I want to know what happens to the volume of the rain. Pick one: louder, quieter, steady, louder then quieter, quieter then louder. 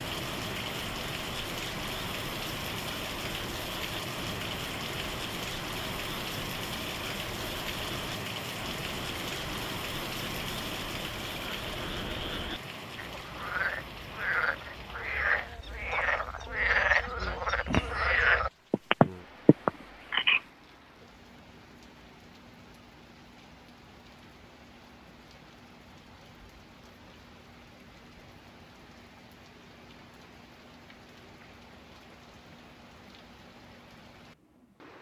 quieter.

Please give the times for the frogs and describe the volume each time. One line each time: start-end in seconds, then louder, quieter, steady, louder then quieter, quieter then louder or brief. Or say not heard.
0.0-20.4 louder.